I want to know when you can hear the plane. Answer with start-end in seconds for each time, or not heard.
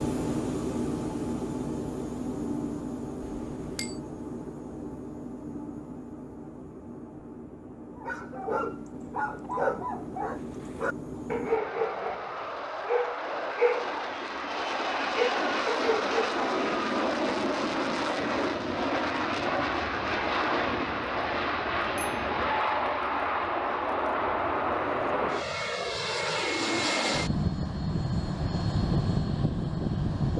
0.0-30.3.